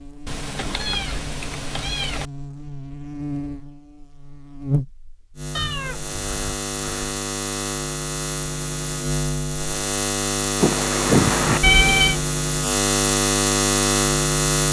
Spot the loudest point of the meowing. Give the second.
12 s.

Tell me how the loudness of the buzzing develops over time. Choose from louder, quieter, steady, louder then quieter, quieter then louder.
louder.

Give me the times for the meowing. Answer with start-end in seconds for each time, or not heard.
0.2-2.2, 5.5-7.1, 10.6-12.2.